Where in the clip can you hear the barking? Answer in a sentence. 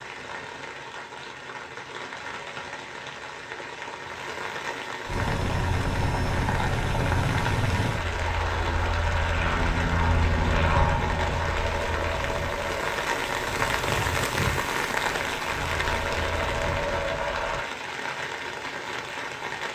The barking can't be heard in this clip.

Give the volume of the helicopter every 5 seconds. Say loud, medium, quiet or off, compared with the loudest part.
off, loud, loud, loud.